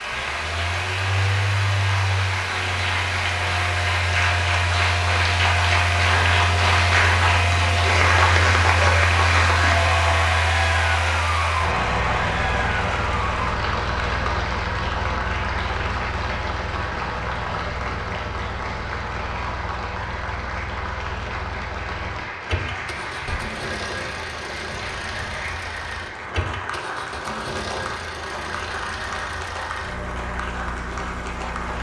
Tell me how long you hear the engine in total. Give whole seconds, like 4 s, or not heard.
32 s.